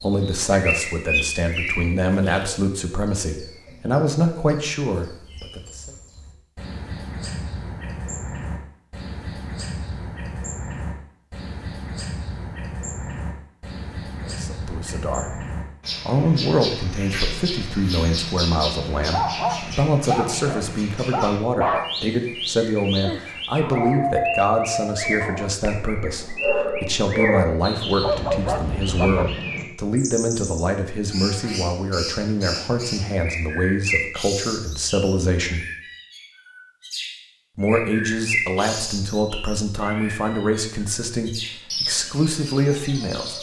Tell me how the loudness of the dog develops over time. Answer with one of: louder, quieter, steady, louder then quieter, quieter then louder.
steady.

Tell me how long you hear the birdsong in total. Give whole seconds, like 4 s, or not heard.
43 s.